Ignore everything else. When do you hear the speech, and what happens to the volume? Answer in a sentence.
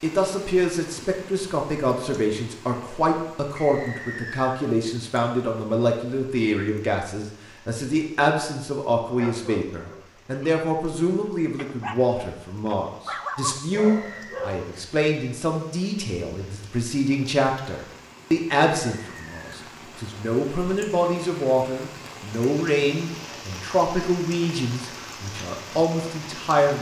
The speech can be heard from 0.0 to 26.7 s, at a steady volume.